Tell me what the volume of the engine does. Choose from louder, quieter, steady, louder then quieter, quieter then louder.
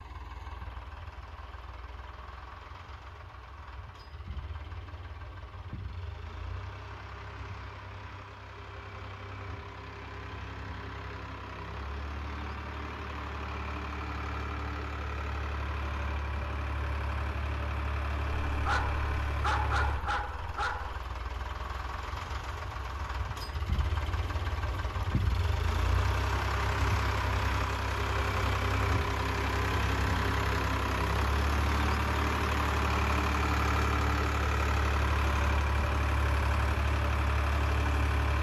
louder.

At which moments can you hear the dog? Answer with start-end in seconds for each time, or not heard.
18.4-21.0.